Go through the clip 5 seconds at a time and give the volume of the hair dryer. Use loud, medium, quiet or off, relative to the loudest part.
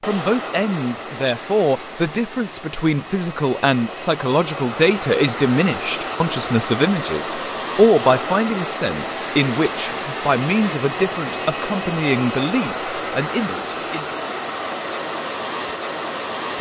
medium, loud, loud, loud.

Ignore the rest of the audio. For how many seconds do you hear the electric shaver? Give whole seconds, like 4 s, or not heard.
not heard.